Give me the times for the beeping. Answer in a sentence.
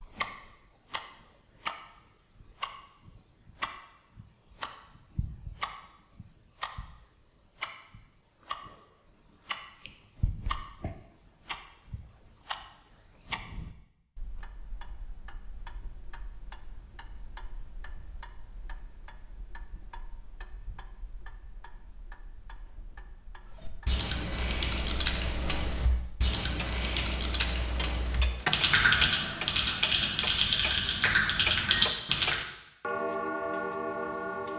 The beeping can't be heard in this clip.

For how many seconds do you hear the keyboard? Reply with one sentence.
You can hear the keyboard for 9 seconds altogether.